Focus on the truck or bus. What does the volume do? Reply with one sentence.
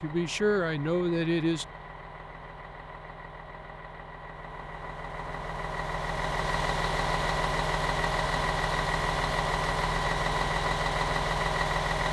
The volume of the truck or bus goes up.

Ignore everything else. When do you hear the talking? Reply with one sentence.
The talking can be heard from 0.0 to 1.6 s.